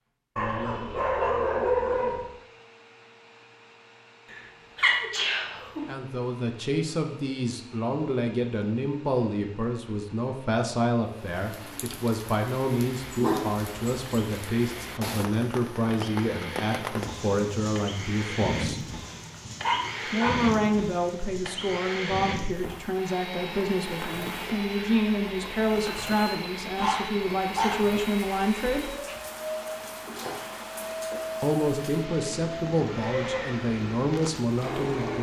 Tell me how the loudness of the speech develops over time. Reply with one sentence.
The loudness of the speech stays about the same.